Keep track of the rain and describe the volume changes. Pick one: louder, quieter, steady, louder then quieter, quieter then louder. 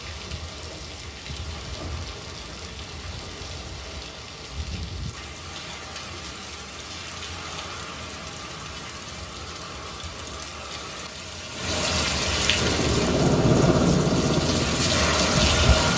louder.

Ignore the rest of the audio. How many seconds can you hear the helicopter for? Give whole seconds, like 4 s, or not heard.
3 s.